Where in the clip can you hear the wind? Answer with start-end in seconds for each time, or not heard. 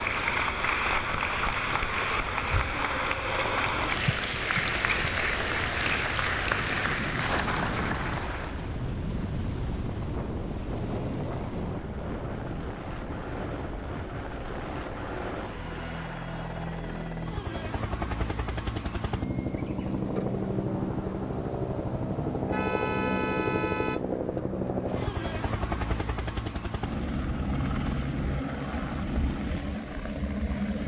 0.0-15.7.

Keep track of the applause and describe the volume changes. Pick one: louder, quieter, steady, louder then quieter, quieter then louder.
steady.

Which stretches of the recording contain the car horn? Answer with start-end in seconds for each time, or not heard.
22.4-24.1.